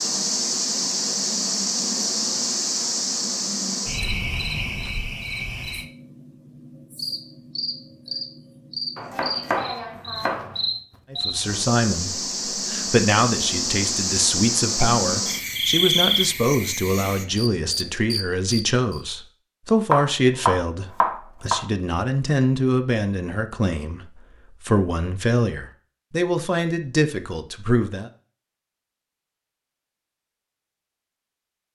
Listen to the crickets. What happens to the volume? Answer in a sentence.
The volume of the crickets goes down, then up.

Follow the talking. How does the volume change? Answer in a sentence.
The loudness of the talking stays about the same.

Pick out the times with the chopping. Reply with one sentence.
You can hear the chopping from 8.9 to 10.6 s and from 19.9 to 21.6 s.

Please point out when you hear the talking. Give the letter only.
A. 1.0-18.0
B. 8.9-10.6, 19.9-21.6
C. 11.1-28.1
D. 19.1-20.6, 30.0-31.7
C.